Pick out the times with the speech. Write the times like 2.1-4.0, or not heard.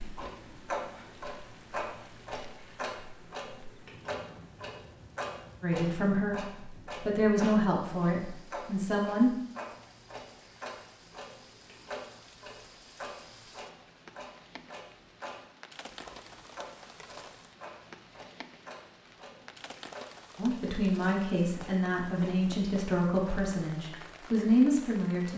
5.6-9.3, 20.4-25.3.